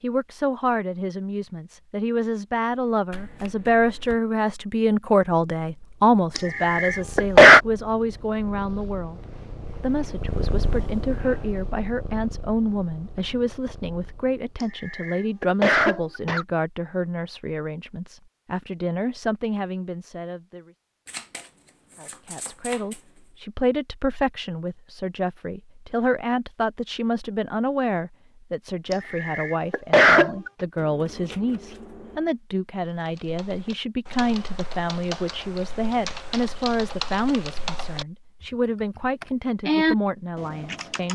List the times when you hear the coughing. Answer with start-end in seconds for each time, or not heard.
6.3-7.6, 14.6-16.4, 28.9-30.5.